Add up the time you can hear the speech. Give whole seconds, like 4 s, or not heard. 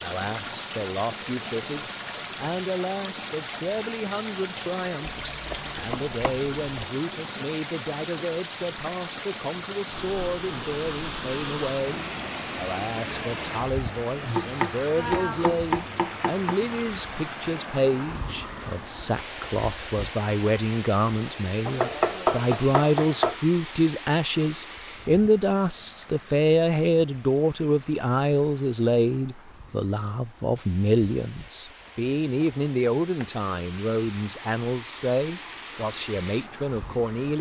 37 s.